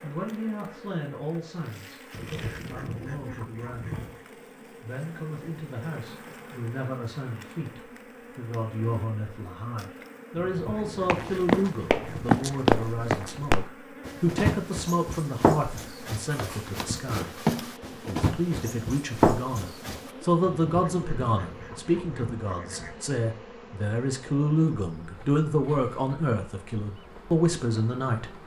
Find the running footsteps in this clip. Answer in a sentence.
The running footsteps can be heard from 11.1 to 20.0 s.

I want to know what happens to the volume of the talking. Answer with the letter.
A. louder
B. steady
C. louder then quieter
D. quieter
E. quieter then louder
A.